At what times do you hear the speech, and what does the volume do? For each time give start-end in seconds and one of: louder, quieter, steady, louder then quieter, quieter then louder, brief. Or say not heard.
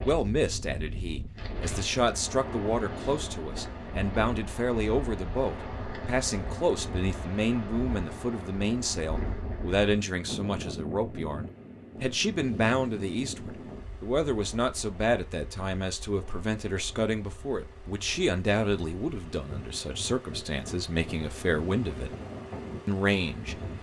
0.0-22.1 steady
22.9-23.6 brief.